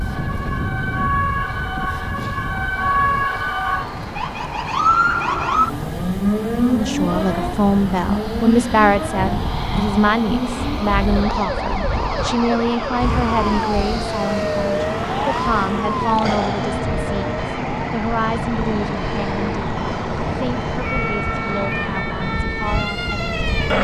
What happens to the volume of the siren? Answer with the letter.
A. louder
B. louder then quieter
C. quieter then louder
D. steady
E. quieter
E.